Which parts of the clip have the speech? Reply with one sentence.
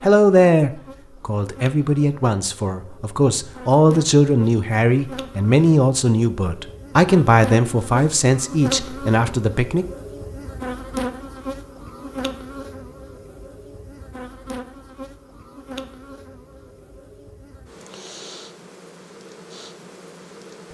The speech can be heard from 0.0 to 9.8 s.